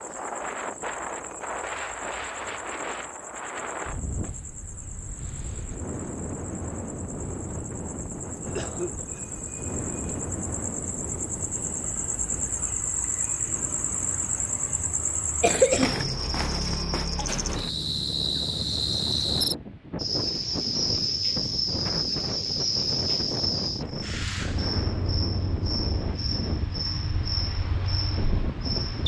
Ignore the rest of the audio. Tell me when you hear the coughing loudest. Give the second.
16 s.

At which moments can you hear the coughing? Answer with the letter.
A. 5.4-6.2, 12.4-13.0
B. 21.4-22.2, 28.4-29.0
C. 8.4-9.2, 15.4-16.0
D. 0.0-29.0
C.